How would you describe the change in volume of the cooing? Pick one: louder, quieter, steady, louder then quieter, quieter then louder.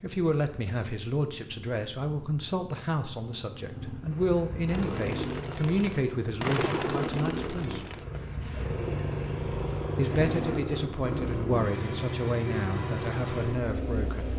louder then quieter.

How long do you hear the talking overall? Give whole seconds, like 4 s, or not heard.
12 s.